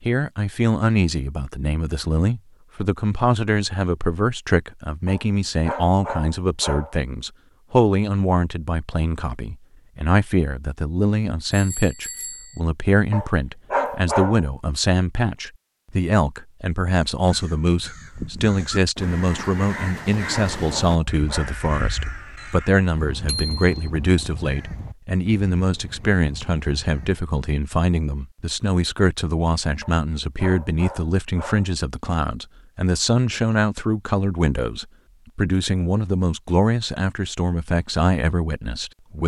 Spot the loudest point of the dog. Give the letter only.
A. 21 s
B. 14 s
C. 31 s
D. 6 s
B.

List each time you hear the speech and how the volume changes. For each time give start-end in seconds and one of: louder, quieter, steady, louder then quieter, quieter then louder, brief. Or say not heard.
0.0-39.2 steady.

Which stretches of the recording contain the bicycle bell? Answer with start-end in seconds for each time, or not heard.
11.5-12.6, 23.2-23.8.